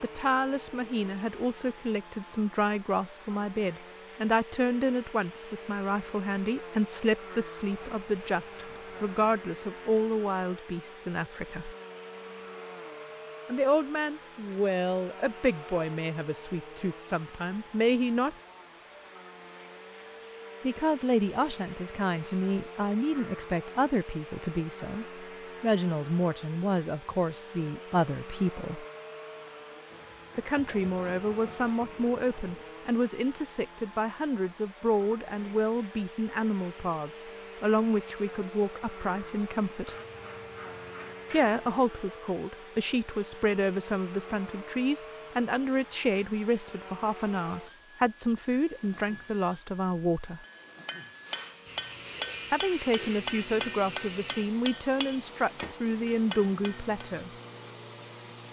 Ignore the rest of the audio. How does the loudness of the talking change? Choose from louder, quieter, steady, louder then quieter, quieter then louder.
steady.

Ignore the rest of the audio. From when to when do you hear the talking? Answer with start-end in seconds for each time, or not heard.
0.0-11.8, 13.4-18.4, 20.6-28.9, 30.4-40.0, 41.3-50.4, 52.5-57.3.